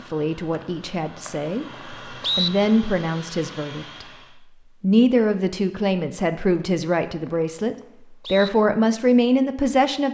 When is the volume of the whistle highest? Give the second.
2 s.